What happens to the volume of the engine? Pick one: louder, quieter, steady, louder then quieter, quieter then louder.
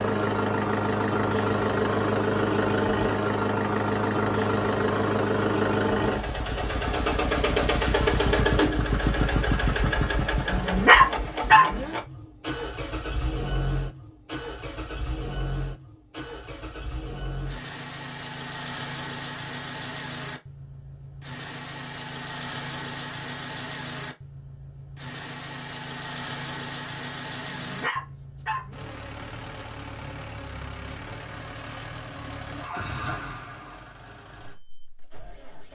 quieter.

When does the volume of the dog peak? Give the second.
11 s.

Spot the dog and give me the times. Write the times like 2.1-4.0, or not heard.
10.4-11.9, 27.5-28.9.